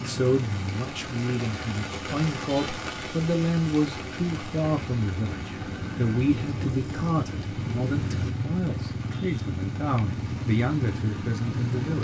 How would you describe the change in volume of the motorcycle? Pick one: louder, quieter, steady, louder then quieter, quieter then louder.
louder.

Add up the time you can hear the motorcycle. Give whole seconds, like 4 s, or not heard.
12 s.